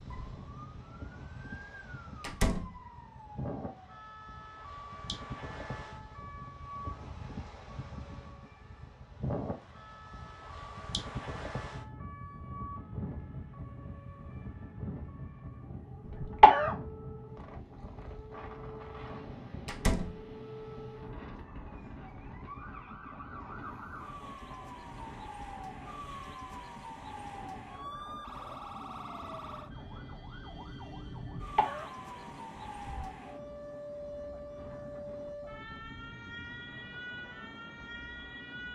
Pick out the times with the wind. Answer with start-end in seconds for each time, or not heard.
0.0-38.7.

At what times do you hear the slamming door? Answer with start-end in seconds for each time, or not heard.
2.2-2.8, 19.6-20.2.